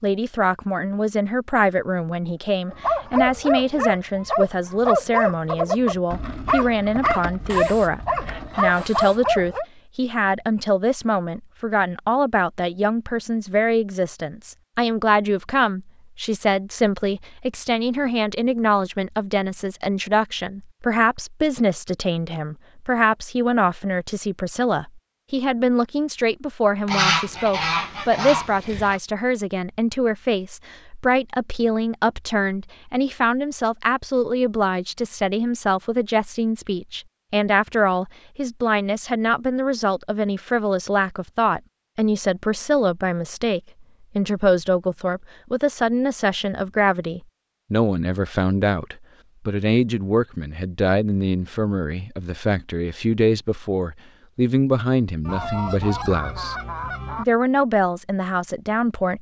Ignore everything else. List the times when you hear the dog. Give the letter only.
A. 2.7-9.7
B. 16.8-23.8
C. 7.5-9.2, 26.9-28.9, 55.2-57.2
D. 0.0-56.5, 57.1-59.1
A.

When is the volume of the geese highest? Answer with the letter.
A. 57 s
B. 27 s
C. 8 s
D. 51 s
B.